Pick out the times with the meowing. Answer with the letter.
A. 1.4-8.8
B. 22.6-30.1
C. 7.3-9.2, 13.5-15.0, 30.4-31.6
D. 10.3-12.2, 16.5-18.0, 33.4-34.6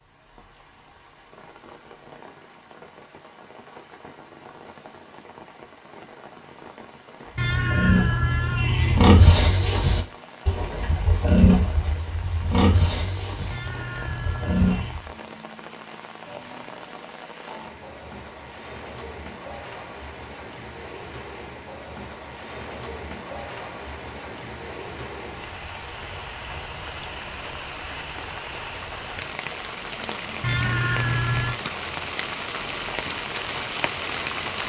C.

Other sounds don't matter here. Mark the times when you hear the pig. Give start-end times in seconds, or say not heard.
7.5-15.1.